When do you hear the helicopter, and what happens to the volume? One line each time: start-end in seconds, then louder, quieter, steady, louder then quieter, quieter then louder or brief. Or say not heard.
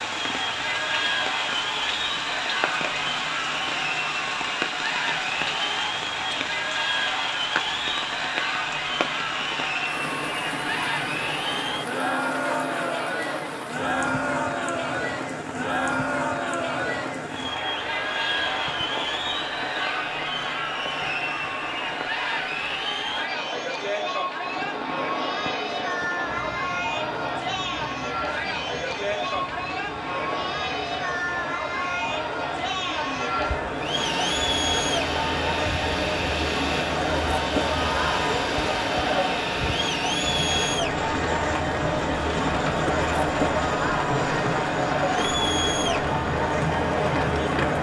33.8-47.7 steady.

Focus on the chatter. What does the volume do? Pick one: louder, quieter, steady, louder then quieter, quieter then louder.
steady.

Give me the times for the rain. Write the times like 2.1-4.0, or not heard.
0.0-47.7.